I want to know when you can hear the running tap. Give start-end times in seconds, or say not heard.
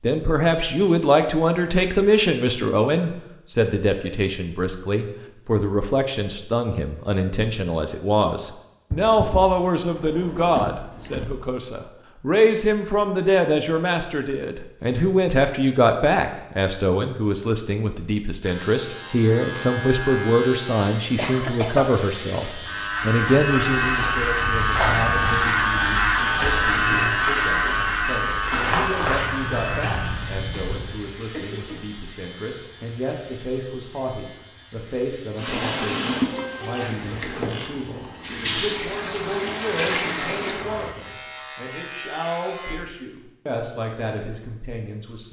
35.4-41.0.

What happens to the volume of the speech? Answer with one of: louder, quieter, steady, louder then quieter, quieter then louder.
quieter.